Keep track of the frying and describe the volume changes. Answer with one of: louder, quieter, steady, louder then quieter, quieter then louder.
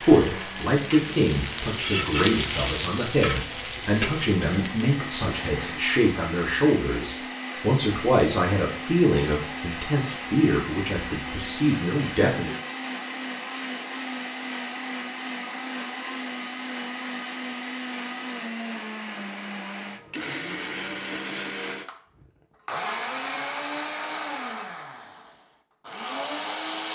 louder then quieter.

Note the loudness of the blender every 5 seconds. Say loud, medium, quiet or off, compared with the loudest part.
medium, loud, loud, loud, loud, loud.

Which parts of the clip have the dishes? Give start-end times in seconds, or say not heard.
not heard.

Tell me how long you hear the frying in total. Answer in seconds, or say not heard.
6 s.